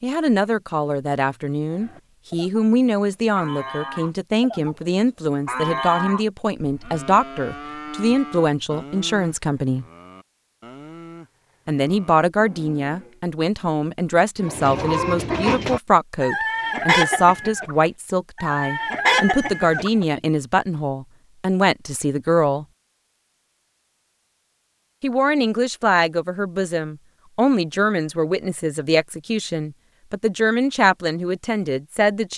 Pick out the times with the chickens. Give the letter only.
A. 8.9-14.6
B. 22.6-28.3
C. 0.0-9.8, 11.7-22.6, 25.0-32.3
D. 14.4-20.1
D.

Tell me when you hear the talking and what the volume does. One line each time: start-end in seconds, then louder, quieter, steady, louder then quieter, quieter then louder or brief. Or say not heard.
0.0-9.8 steady
11.7-22.6 steady
25.0-32.3 steady.